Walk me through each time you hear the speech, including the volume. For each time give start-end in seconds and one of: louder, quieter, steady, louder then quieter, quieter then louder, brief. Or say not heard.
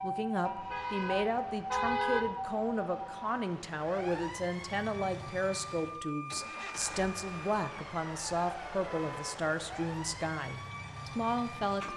0.0-11.9 steady.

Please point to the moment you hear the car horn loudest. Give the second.
2 s.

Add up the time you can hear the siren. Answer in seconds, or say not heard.
12 s.